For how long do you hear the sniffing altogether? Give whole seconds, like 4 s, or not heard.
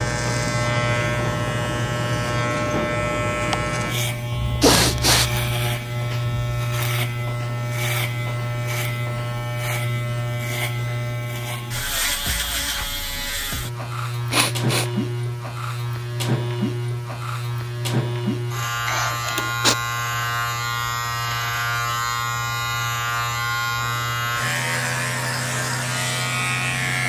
2 s.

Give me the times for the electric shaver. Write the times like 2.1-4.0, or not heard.
0.0-27.0.